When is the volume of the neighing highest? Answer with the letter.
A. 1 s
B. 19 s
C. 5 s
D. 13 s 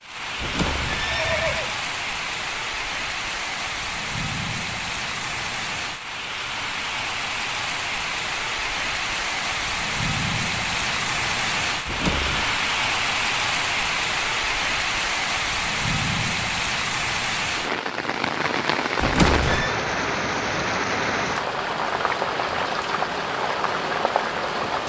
B.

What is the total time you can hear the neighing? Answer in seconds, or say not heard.
3 s.